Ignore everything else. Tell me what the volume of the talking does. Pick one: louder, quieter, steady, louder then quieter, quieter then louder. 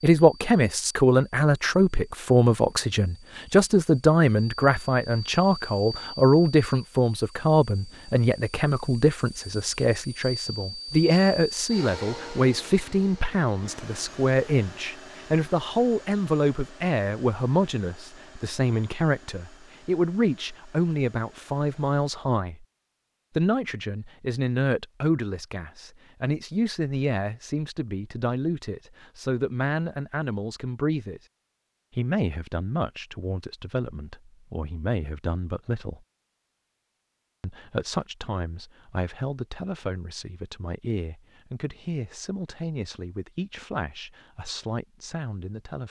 quieter.